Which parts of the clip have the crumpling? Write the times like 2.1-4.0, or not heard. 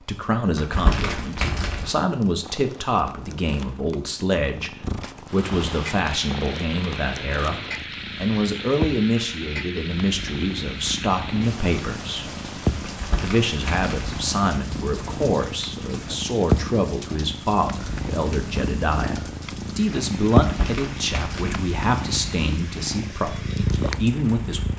0.6-1.9, 12.8-14.2, 20.4-21.6.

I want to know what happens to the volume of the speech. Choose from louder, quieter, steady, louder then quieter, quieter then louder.
steady.